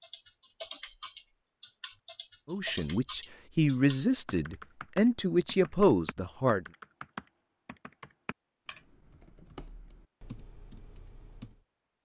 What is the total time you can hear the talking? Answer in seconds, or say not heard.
4 s.